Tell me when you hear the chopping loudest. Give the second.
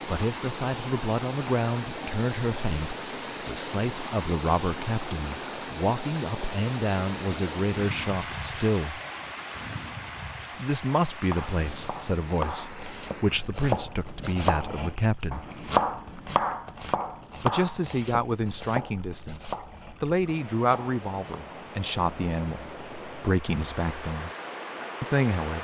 16 s.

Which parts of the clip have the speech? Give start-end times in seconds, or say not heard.
0.1-9.0, 10.6-15.4, 17.4-24.3, 25.0-25.5.